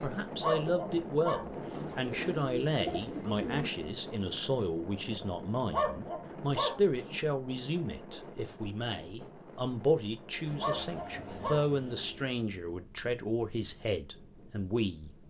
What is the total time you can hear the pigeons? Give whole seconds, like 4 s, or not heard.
4 s.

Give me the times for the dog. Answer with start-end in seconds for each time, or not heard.
0.4-1.9, 5.7-7.2, 10.6-12.1.